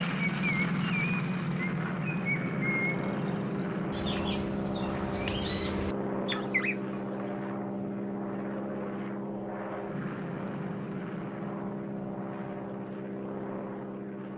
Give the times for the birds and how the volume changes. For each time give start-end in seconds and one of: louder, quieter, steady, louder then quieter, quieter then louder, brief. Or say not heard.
0.0-7.3 quieter then louder.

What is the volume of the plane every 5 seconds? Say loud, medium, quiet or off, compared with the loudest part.
loud, loud, medium.